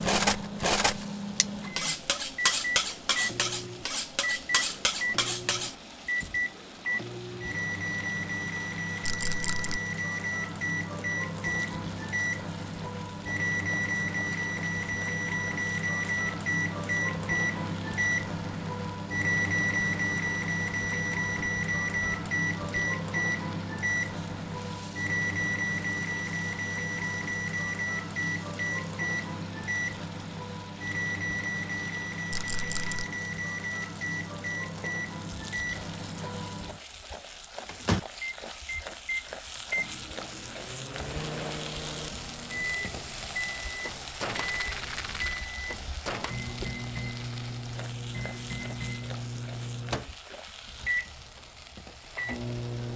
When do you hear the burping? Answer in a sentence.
You can't hear the burping here.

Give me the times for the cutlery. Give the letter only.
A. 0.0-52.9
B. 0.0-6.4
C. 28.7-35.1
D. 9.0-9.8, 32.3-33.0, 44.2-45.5
B.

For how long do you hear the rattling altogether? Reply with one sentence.
You can hear the rattling for 3 seconds altogether.